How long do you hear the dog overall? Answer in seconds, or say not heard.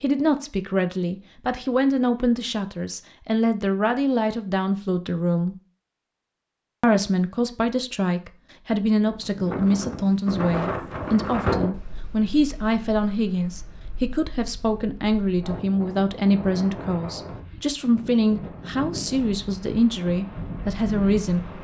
not heard.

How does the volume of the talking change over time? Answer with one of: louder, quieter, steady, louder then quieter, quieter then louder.
steady.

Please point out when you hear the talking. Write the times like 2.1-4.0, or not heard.
0.0-5.5, 6.8-21.4.